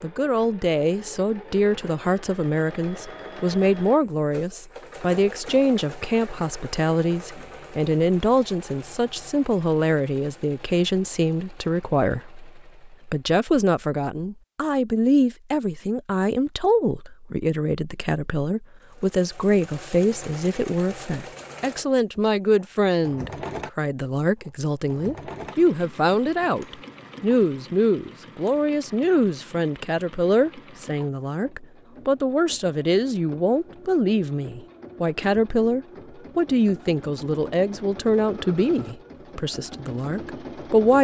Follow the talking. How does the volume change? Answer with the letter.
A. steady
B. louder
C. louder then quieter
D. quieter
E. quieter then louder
A.